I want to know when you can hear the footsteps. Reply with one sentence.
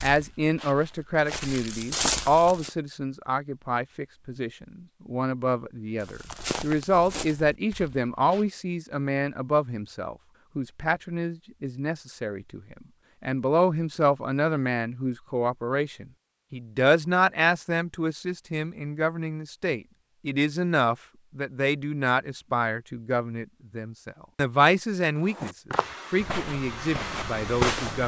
The footsteps can be heard from 0.0 to 2.7 s, from 6.0 to 8.6 s and from 25.2 to 28.0 s.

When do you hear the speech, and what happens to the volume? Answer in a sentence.
The speech can be heard from 0.0 to 25.5 s, at a steady volume; and briefly from 26.1 to 28.0 s.